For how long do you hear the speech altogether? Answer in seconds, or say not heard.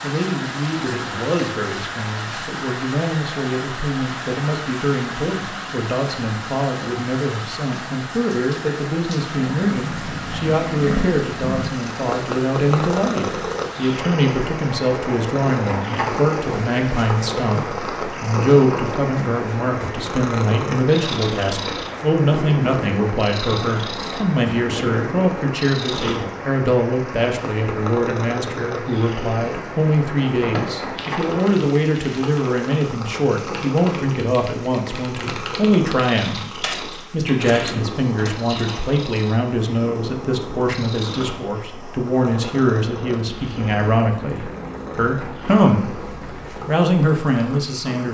48 s.